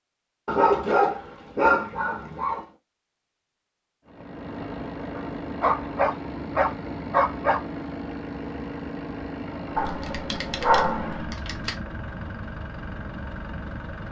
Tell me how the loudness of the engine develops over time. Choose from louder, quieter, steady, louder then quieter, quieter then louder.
steady.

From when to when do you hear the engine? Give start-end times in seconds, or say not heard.
4.0-14.0.